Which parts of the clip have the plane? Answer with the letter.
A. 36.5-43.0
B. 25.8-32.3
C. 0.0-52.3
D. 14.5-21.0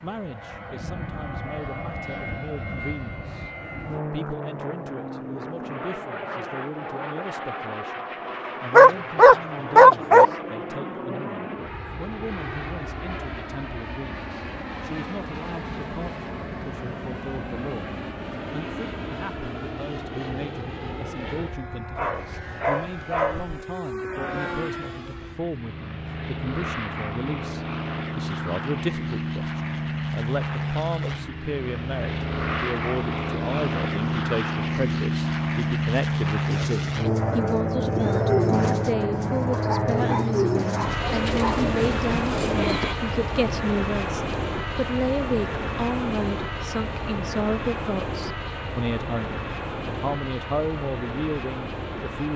C.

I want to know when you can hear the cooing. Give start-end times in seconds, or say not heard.
36.5-43.0.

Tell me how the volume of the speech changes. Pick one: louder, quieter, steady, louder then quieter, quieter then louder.
louder.